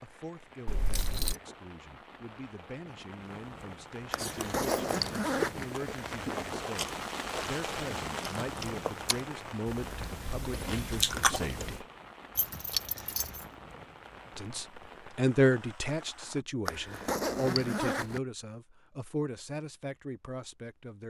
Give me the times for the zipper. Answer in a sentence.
The zipper can be heard from 4.1 to 5.7 s and from 16.6 to 18.2 s.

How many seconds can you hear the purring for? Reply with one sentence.
The purring can't be heard in this clip.